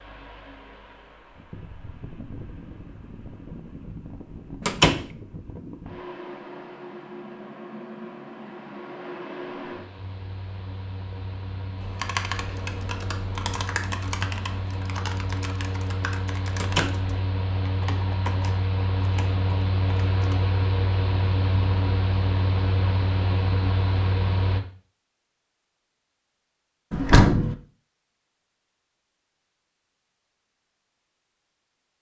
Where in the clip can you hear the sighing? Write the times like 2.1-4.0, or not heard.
not heard.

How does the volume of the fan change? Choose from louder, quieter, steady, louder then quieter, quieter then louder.
louder.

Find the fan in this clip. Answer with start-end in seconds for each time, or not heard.
0.0-24.6.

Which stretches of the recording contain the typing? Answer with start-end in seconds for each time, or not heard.
11.8-20.4.